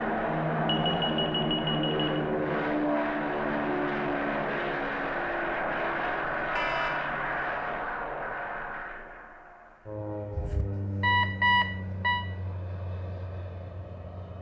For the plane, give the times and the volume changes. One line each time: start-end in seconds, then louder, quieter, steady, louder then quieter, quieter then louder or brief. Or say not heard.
0.0-14.3 quieter.